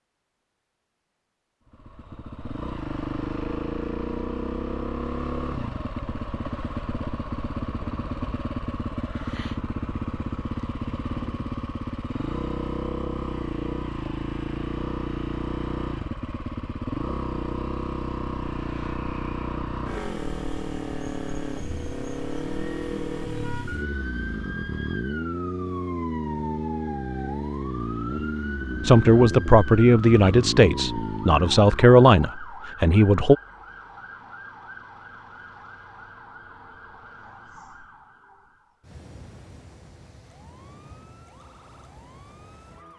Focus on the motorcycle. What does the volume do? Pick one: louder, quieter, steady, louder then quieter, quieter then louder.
steady.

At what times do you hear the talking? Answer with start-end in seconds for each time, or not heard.
28.9-33.4.